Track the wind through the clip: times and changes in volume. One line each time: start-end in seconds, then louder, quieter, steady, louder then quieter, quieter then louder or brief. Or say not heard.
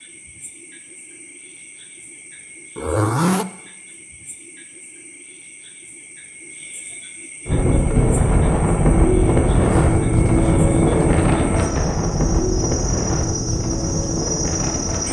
7.5-15.0 quieter.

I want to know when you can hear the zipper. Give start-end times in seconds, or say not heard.
2.8-3.5, 9.7-11.3.